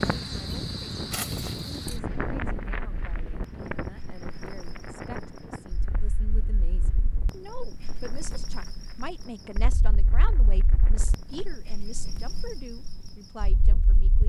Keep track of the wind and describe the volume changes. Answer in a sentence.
The volume of the wind goes down.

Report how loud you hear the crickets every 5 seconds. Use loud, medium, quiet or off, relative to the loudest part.
loud, medium, medium.